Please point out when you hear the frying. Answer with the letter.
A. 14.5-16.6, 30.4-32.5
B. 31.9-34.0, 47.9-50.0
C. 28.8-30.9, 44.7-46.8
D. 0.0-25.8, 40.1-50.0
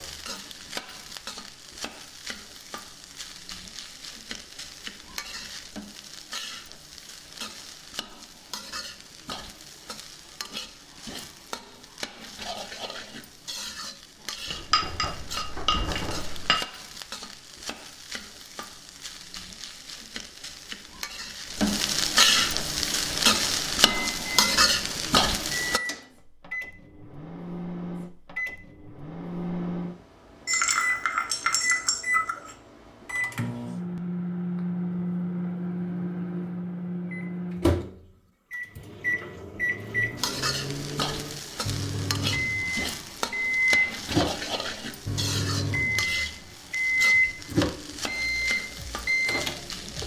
D.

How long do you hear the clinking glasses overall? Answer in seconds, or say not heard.
4 s.